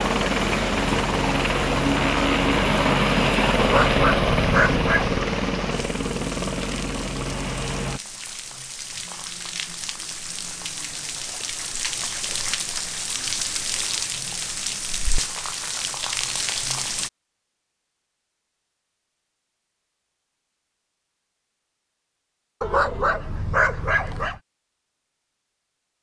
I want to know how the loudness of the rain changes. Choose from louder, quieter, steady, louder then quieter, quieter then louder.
quieter then louder.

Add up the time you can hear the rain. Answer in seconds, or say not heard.
17 s.